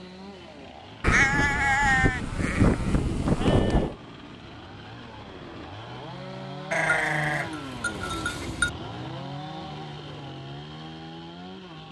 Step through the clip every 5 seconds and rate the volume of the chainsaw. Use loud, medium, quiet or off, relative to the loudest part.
medium, loud, loud.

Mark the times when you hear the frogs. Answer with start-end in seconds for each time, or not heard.
not heard.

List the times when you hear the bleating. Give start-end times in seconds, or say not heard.
1.0-4.0, 6.7-8.7.